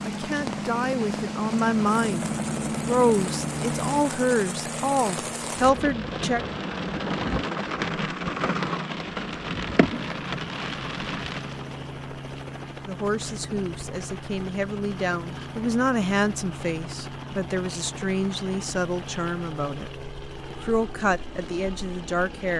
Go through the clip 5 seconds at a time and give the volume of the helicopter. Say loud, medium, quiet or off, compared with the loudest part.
loud, medium, medium, medium, medium.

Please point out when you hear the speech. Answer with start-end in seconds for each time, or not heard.
0.0-6.4, 12.8-22.5.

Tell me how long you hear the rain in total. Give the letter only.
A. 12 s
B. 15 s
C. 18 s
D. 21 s
A.